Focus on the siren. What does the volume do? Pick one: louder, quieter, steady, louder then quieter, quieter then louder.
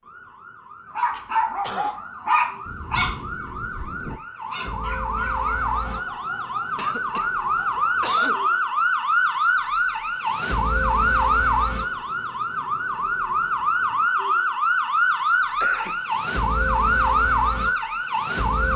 louder.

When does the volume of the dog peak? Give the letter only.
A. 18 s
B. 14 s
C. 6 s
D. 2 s
D.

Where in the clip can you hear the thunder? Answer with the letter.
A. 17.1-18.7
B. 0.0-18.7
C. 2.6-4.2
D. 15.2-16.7
C.